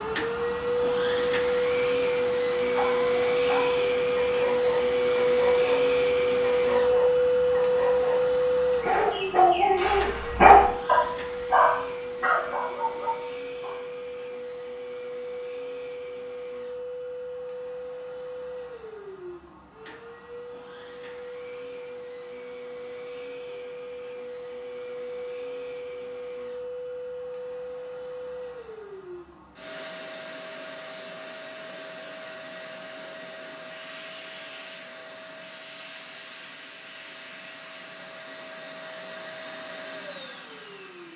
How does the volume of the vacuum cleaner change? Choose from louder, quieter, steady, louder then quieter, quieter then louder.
quieter.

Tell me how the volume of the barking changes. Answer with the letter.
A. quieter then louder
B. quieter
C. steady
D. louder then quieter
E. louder
D.